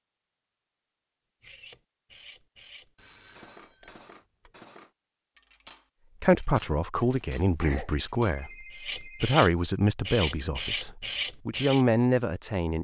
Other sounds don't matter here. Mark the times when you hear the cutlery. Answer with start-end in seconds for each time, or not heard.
1.4-11.8.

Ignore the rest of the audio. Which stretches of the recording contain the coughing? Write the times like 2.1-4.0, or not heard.
7.2-8.4.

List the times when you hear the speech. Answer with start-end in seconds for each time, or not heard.
6.2-12.7.